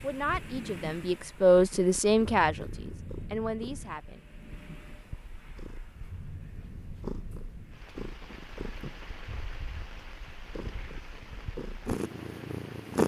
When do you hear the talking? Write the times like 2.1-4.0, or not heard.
0.0-4.2.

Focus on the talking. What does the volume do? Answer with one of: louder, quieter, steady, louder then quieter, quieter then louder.
louder then quieter.